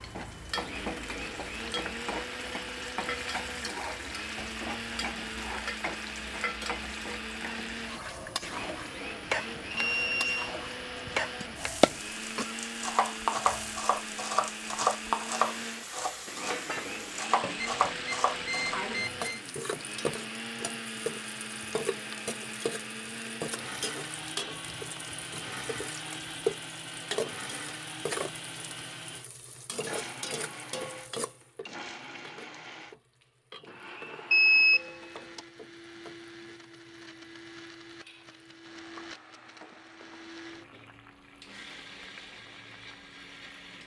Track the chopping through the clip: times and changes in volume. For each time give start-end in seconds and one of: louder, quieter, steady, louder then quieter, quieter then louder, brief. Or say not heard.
10.9-18.8 quieter then louder.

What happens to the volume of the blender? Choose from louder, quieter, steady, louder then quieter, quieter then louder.
quieter.